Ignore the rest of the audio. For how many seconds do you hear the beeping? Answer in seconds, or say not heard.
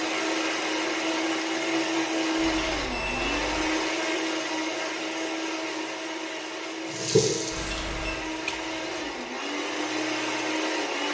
2 s.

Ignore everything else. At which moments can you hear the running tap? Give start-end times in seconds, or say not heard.
6.8-9.4.